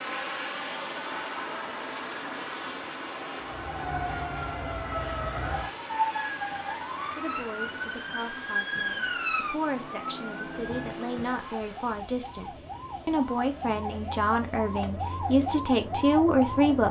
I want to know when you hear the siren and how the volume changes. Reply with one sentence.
The siren can be heard from 3.4 to 16.8 s, getting quieter then louder.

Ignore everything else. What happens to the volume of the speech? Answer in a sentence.
The loudness of the speech goes up.